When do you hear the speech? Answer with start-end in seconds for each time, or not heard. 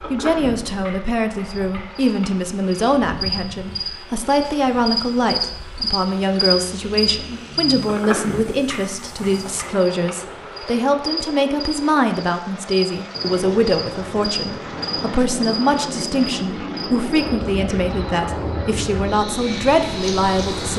0.1-20.7.